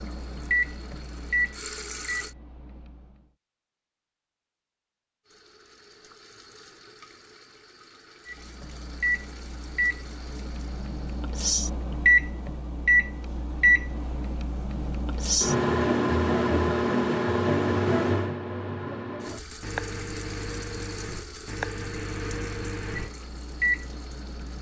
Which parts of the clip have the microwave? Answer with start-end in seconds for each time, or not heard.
0.0-3.2, 8.2-24.5.